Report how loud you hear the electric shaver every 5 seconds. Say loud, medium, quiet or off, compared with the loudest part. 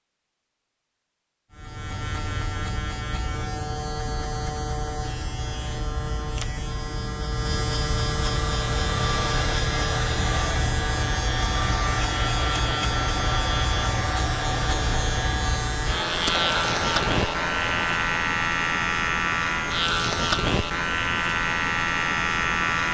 medium, medium, loud, loud, loud.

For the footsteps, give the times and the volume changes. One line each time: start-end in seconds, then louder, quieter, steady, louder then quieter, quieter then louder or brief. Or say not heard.
not heard.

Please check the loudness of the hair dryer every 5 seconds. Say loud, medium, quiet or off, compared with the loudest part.
off, loud, loud, loud, off.